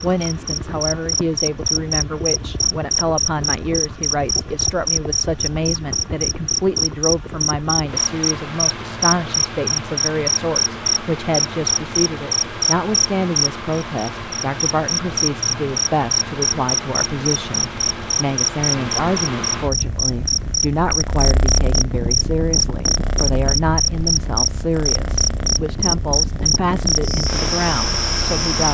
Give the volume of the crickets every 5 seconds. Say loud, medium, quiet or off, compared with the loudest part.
loud, loud, loud, medium, loud, loud.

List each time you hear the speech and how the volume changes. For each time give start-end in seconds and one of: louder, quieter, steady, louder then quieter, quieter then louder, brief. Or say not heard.
0.0-28.6 steady.